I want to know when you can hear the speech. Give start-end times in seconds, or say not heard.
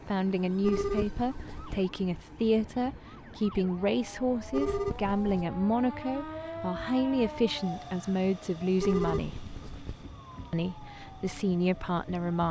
0.1-9.4, 10.5-12.4.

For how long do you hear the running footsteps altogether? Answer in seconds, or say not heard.
not heard.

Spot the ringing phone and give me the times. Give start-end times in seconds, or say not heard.
0.6-1.9, 4.5-5.5, 8.8-10.1.